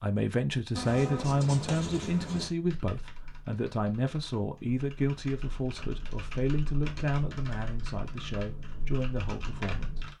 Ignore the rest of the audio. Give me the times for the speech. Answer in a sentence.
The speech can be heard from 0.0 to 10.1 s.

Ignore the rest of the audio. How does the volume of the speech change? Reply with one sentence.
The loudness of the speech goes down.